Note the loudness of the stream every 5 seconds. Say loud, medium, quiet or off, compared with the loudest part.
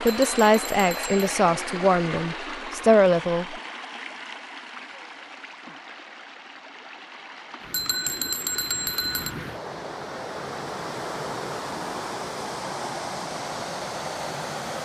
loud, medium, loud.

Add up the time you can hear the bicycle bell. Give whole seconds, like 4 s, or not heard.
3 s.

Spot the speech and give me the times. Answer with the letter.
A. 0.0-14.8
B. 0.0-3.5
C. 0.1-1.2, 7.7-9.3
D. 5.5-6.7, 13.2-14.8
B.